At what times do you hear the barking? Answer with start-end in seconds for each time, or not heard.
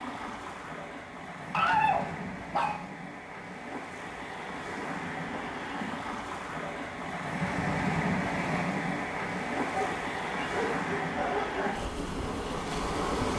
1.5-2.9, 9.7-11.8.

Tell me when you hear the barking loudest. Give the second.
2 s.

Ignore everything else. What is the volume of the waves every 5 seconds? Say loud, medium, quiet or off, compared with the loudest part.
medium, loud, loud.